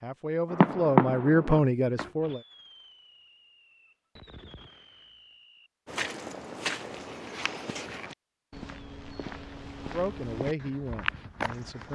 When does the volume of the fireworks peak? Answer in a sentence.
The loudest moment of the fireworks is at 1 second.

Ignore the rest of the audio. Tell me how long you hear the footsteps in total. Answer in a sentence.
You can hear the footsteps for 6 seconds altogether.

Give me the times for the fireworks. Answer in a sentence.
You can hear the fireworks from 0.5 to 5.7 s.